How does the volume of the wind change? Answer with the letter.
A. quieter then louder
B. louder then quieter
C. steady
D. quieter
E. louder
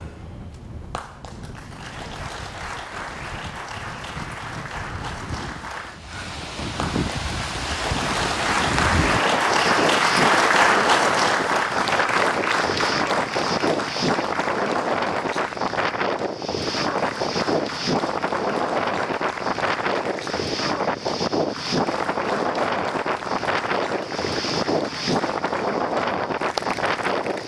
E.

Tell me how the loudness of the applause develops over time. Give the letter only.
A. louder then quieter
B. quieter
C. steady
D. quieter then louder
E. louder
A.